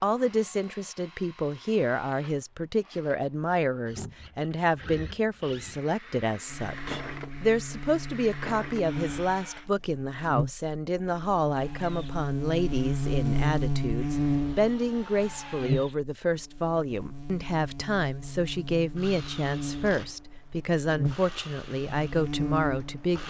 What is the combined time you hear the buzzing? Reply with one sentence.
The buzzing can be heard for 17 seconds in total.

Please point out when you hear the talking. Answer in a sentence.
The talking can be heard from 0.0 to 23.2 s.